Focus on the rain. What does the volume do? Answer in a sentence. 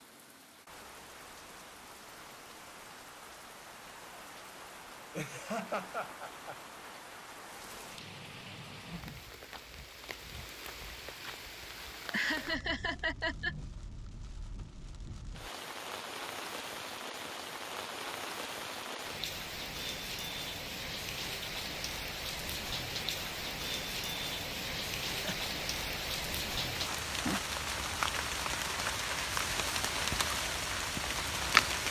The volume of the rain goes up.